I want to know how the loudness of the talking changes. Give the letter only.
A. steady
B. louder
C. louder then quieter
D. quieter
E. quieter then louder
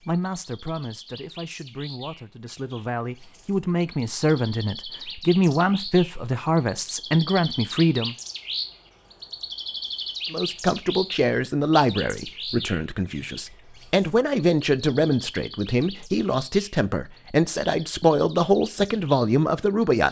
B.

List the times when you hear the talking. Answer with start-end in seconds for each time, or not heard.
0.1-8.2, 10.3-20.0.